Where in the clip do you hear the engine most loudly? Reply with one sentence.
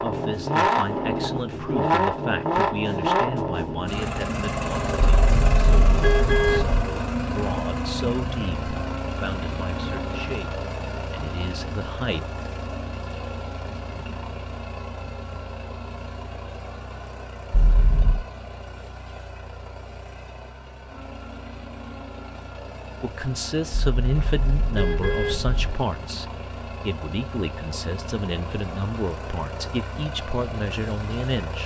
The volume of the engine peaks at 2 seconds.